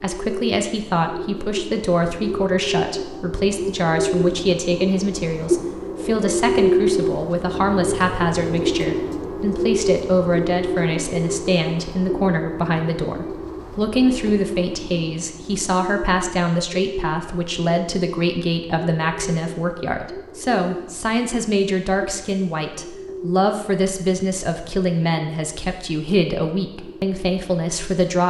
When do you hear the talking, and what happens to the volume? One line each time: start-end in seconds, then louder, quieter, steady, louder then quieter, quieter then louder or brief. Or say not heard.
0.0-28.2 steady.